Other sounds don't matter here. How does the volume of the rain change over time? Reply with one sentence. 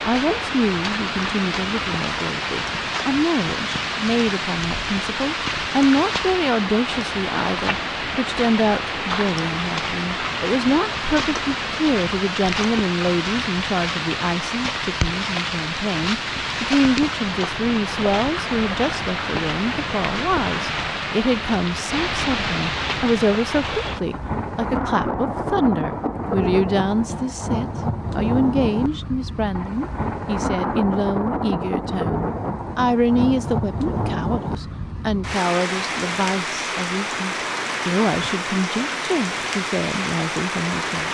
The volume of the rain stays about the same.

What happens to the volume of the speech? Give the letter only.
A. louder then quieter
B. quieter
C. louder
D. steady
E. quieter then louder
D.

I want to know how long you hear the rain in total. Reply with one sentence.
The rain can be heard for 41 seconds in total.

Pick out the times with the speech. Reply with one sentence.
The speech can be heard from 0.1 to 41.0 s.